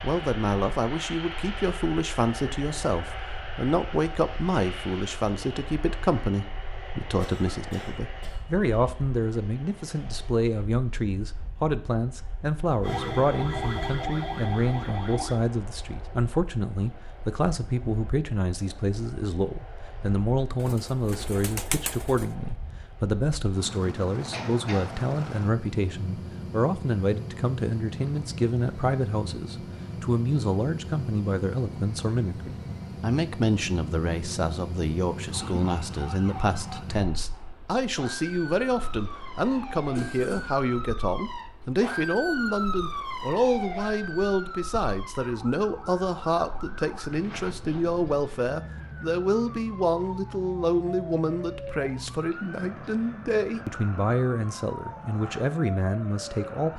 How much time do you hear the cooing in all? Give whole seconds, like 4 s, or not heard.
2 s.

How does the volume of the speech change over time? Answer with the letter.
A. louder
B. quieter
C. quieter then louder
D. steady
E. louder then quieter
D.